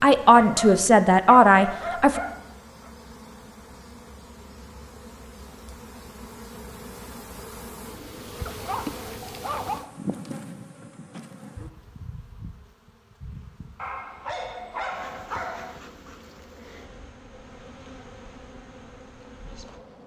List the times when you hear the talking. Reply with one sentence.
The talking can be heard from 0.0 to 2.2 s.